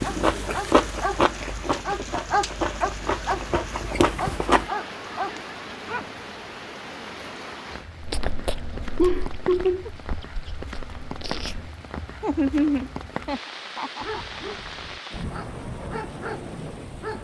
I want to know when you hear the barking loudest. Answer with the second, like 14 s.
2 s.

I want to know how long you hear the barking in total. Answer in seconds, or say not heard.
9 s.